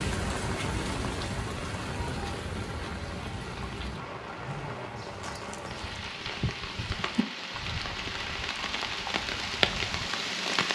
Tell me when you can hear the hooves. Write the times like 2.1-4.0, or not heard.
3.9-10.1.